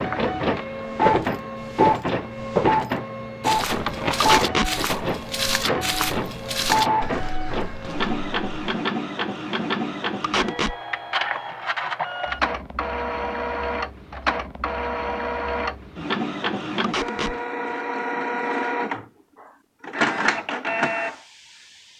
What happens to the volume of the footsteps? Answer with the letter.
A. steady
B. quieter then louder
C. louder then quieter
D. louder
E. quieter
E.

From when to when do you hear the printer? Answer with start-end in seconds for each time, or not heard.
0.0-21.9.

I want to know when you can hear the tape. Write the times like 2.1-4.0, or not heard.
4.2-4.7, 10.2-10.8, 16.8-17.4.